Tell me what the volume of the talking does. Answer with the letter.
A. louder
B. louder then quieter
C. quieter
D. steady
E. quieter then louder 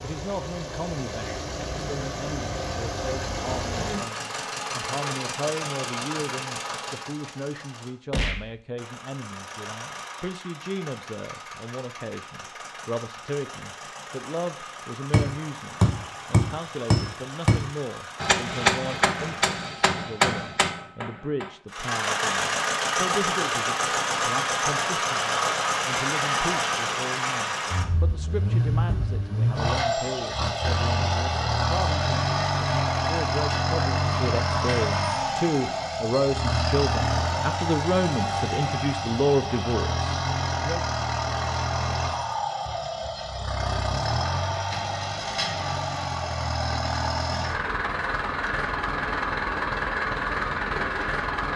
A.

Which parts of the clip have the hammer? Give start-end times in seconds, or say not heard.
15.1-21.5.